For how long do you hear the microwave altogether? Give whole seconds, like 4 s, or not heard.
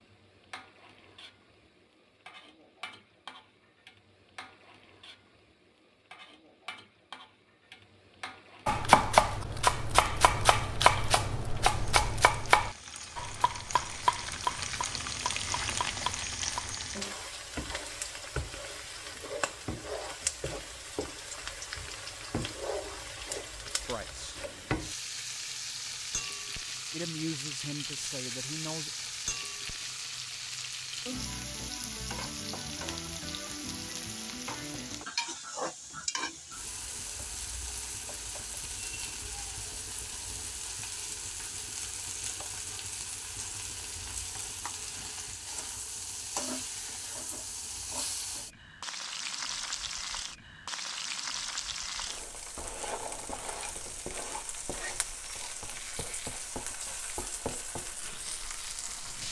not heard.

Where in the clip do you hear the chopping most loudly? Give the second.
9 s.